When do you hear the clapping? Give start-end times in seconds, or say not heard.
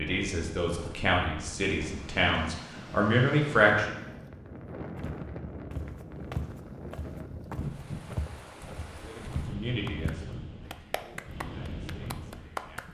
9.8-12.8.